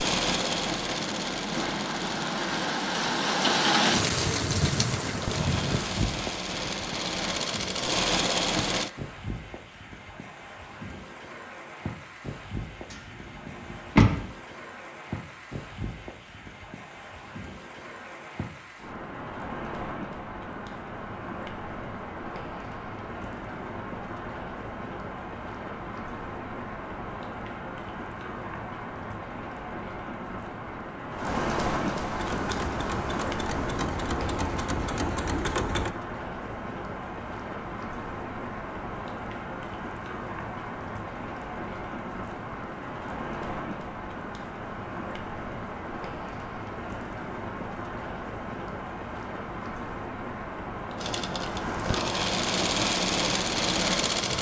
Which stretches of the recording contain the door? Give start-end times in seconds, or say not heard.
12.9-14.2.